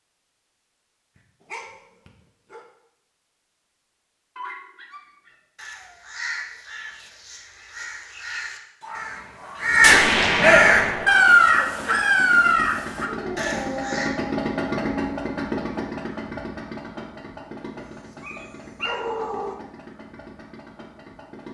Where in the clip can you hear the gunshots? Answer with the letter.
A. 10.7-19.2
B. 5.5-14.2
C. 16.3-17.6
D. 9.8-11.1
D.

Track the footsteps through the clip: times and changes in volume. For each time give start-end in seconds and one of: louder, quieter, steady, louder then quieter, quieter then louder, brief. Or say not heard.
not heard.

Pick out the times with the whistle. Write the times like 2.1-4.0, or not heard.
not heard.